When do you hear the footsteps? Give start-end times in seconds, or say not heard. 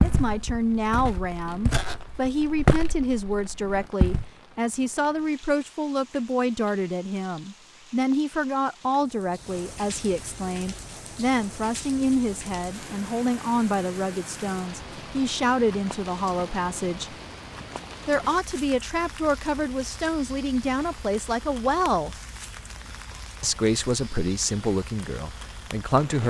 0.0-4.2.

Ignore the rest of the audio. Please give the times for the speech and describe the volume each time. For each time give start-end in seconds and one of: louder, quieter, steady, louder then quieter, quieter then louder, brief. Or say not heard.
0.0-17.1 steady
18.1-22.1 steady
23.4-26.2 brief.